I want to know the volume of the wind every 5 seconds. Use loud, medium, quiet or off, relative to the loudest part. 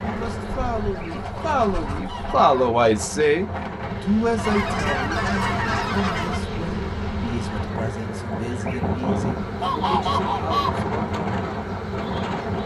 medium, loud, loud.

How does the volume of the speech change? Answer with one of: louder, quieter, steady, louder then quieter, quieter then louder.
louder then quieter.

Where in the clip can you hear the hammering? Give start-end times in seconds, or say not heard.
not heard.